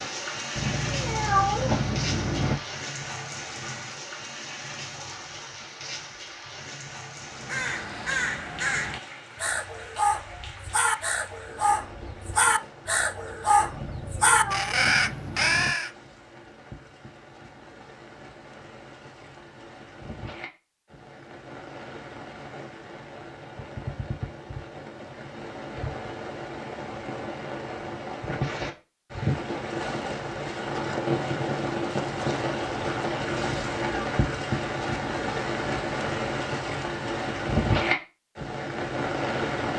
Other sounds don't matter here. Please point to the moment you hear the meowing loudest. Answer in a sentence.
The volume of the meowing peaks at 1 second.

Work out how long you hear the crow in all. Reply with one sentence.
The crow can be heard for 9 seconds in total.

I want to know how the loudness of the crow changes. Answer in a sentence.
The loudness of the crow goes up.